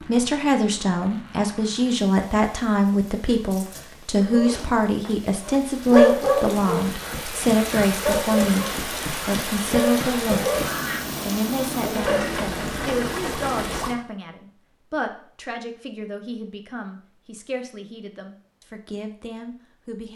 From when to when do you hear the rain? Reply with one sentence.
The rain can be heard from 0.0 to 13.9 s.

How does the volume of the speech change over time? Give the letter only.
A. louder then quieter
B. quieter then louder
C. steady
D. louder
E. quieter
E.